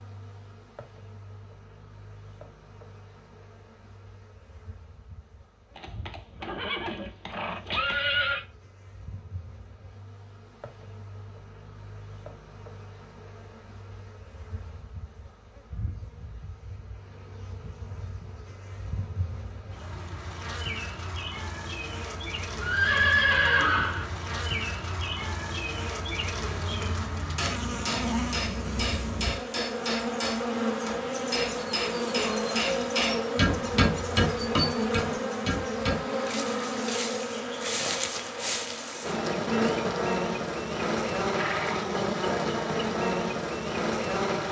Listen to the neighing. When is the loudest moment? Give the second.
23 s.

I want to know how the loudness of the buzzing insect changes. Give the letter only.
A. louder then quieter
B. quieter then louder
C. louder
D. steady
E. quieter
C.